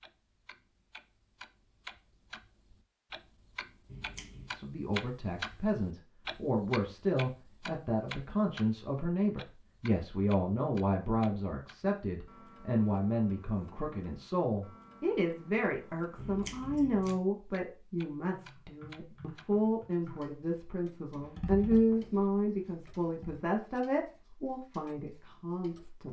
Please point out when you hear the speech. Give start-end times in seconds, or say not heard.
4.5-26.0.